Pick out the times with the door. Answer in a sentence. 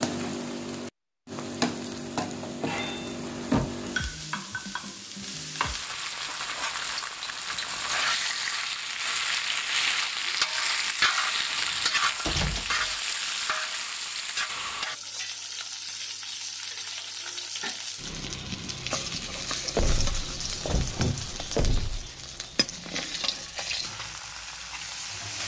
The door can be heard from 2.7 to 3.9 s, from 11.5 to 12.9 s and from 19.8 to 22.1 s.